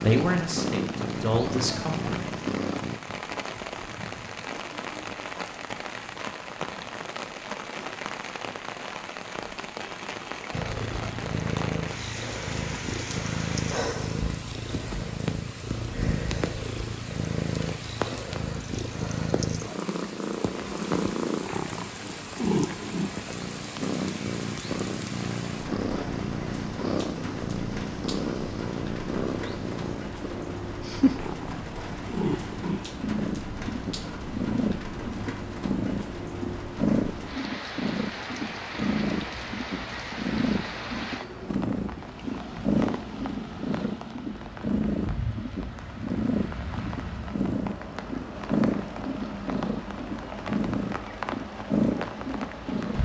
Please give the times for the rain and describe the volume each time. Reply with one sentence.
The rain can be heard from 0.0 to 53.0 s, at a steady volume.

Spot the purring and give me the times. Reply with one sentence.
The purring can be heard from 0.0 to 3.0 s and from 10.5 to 53.0 s.